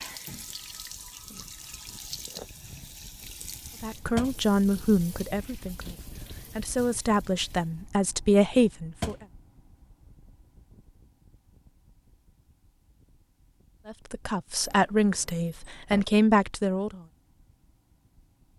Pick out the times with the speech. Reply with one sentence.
You can hear the speech from 3.8 to 9.2 s and from 13.8 to 17.0 s.